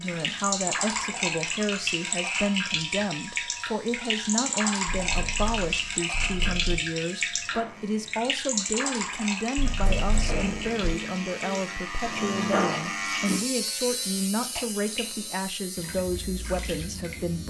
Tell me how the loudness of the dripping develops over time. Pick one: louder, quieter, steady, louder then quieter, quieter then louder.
quieter.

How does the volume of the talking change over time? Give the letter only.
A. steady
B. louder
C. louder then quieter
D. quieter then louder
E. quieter
A.